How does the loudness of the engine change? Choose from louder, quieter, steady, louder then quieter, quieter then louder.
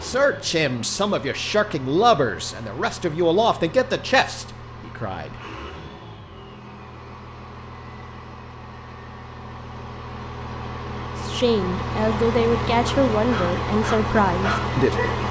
louder.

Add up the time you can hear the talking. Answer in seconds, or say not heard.
9 s.